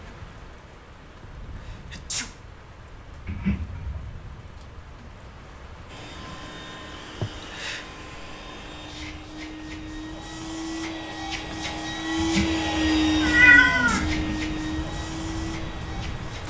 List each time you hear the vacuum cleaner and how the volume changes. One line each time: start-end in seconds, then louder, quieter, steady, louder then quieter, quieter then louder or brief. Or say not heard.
5.8-16.4 louder then quieter.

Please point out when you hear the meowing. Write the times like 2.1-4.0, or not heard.
3.2-4.0, 12.2-14.3.